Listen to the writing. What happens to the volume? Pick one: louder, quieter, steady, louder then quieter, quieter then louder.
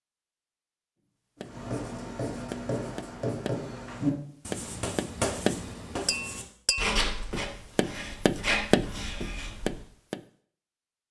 steady.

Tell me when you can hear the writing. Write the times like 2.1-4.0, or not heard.
1.4-9.8.